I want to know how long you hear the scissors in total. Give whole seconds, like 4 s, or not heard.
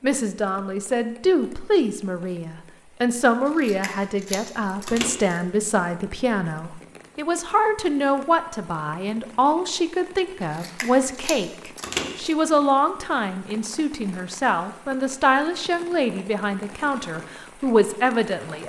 4 s.